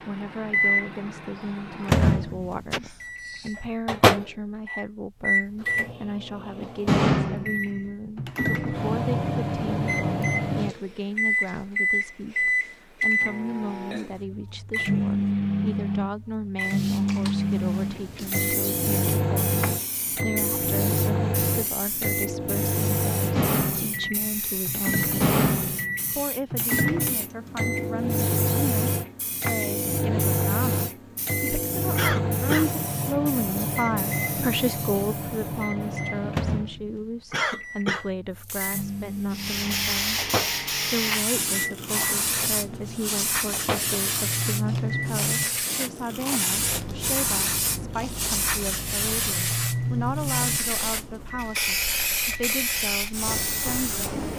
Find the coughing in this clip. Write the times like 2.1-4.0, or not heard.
2.7-3.5, 31.9-32.7, 37.3-38.0.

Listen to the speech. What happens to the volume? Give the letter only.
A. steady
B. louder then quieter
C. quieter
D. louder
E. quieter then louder
A.